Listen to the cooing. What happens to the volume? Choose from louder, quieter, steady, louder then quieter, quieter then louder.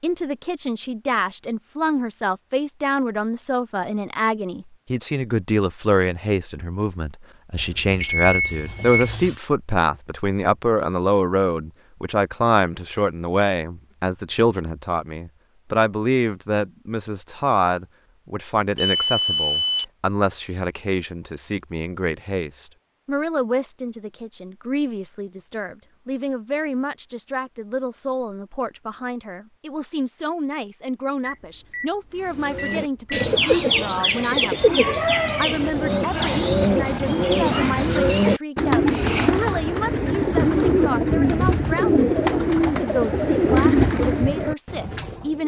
steady.